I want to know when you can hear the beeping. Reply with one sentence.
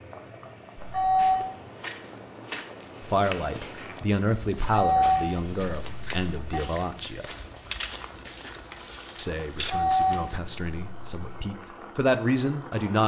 The beeping can be heard from 0.8 to 1.4 s, from 4.6 to 6.6 s and from 9.6 to 11.5 s.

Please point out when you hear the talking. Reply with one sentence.
The talking can be heard from 3.0 to 7.3 s and from 9.2 to 13.0 s.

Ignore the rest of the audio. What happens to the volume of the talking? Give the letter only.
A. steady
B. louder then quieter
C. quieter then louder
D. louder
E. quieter
C.